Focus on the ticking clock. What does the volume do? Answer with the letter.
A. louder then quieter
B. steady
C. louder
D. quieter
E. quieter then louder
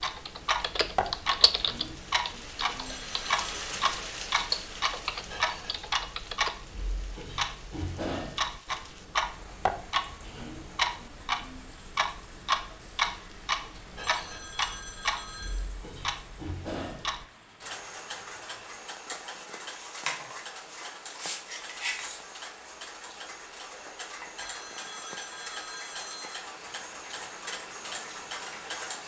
D.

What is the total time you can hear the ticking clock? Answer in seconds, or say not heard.
29 s.